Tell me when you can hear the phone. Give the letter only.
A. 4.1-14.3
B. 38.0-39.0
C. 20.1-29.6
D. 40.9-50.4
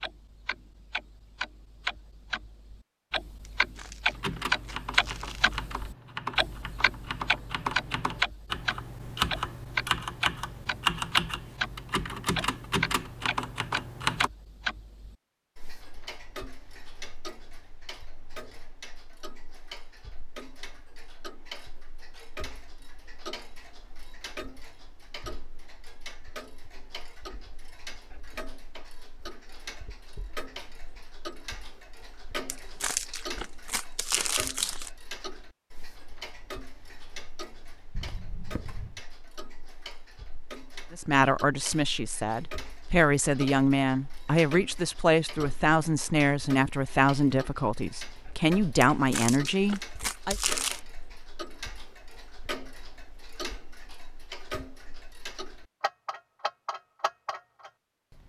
B.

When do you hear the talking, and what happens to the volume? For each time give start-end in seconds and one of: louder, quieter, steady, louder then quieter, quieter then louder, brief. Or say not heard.
40.9-50.4 steady.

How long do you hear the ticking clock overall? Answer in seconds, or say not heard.
58 s.